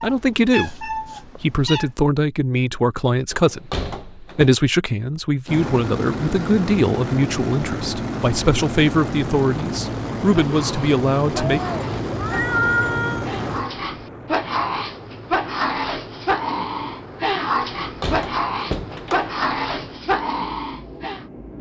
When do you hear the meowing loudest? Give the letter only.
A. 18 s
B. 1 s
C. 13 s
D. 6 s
C.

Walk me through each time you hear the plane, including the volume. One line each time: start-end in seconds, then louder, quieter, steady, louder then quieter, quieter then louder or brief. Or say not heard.
5.5-21.5 quieter.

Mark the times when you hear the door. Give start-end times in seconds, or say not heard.
3.3-4.5, 17.8-19.4.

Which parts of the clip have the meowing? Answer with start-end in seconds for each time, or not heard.
0.0-1.9, 11.3-13.2.